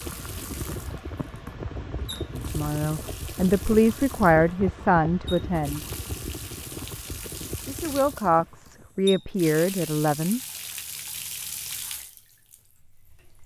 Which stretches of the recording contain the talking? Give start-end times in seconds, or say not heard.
2.4-5.8, 7.7-10.4.